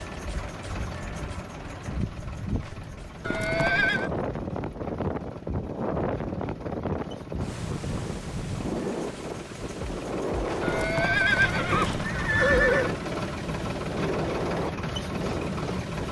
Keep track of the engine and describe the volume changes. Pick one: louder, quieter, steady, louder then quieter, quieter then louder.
quieter then louder.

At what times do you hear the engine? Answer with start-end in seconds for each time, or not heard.
0.0-16.0.